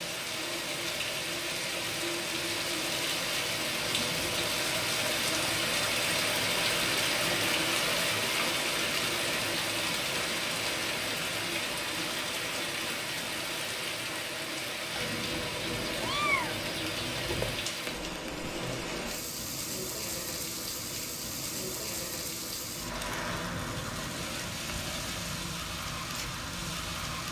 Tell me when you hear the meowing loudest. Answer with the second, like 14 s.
16 s.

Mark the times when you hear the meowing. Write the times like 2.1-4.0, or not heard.
3.8-4.5, 14.9-17.7.